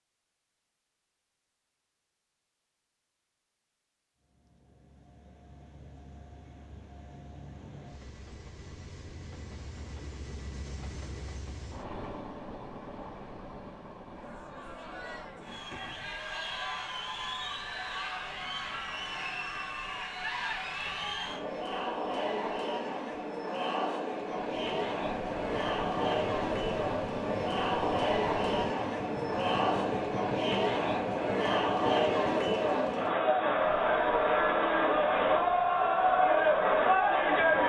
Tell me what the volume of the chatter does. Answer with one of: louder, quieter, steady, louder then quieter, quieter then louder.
louder.